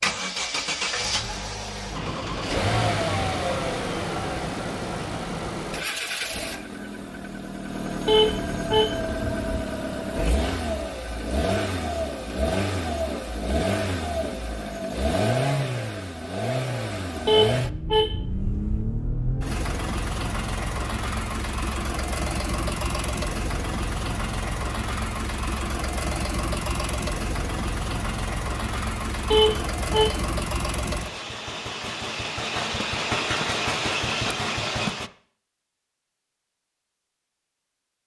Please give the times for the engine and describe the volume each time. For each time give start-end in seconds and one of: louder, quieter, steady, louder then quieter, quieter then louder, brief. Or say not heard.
0.0-35.1 steady.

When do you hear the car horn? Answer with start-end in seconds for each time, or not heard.
8.1-9.6, 17.2-18.9, 29.3-30.2.